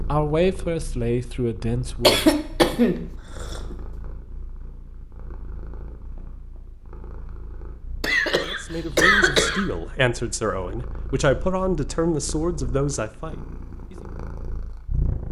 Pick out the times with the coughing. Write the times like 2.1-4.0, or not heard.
2.0-3.8, 8.0-9.7.